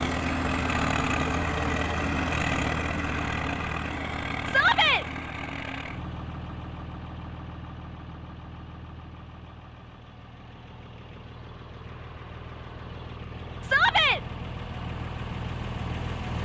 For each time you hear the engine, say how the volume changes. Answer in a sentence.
You can hear the engine from 0.0 to 16.4 s, getting quieter then louder.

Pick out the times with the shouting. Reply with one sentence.
The shouting can be heard from 4.5 to 5.0 s and from 13.6 to 14.2 s.